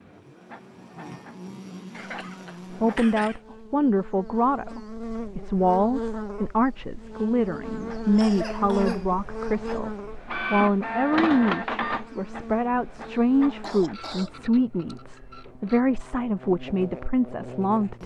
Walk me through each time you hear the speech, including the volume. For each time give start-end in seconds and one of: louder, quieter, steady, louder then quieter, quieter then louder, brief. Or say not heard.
2.7-18.0 steady.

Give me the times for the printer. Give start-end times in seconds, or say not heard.
0.0-3.4, 7.7-15.8.